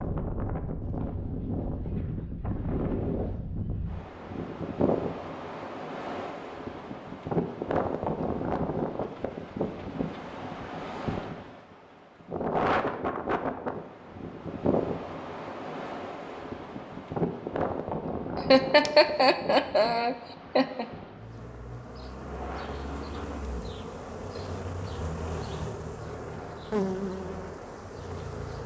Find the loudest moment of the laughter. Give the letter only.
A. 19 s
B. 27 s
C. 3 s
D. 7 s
A.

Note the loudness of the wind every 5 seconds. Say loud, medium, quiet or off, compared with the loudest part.
loud, loud, loud, loud, quiet, quiet.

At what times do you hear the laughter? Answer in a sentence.
You can hear the laughter from 18.5 to 20.9 s.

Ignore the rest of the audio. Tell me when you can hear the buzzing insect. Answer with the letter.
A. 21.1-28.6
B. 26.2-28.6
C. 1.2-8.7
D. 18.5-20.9
A.